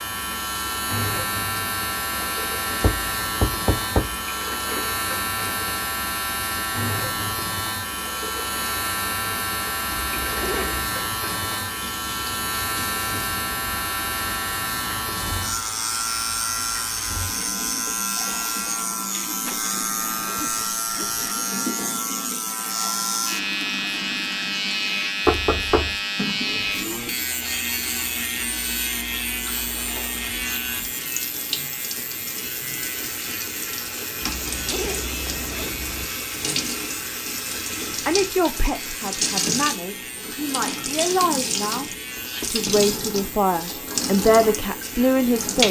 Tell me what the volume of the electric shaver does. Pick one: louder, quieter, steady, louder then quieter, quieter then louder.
quieter.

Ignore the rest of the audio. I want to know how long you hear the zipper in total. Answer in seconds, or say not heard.
5 s.